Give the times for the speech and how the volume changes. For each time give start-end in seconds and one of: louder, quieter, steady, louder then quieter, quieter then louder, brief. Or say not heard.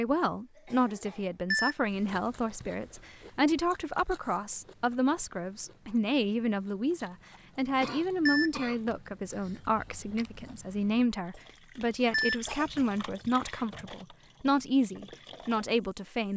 0.0-16.3 steady.